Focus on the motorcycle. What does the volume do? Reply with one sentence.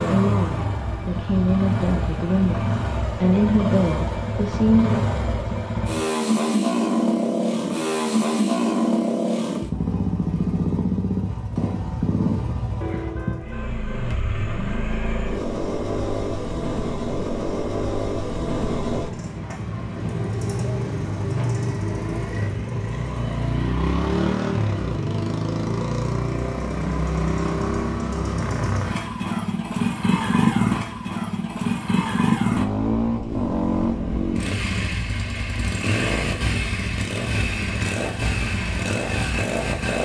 The loudness of the motorcycle stays about the same.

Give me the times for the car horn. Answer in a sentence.
The car horn can be heard from 12.8 to 14.1 s.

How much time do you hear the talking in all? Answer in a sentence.
The talking can be heard for 5 seconds in total.